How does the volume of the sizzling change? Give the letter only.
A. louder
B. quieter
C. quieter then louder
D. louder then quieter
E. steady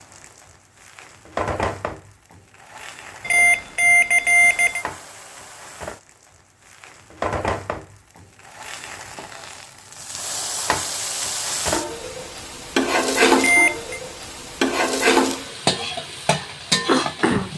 C.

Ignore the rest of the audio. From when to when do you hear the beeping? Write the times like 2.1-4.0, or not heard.
3.2-4.8, 13.3-14.0.